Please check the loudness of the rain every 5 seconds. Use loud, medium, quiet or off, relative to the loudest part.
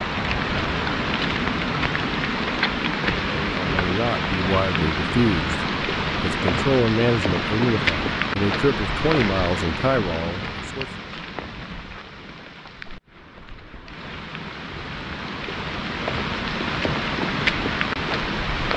loud, loud, medium, loud.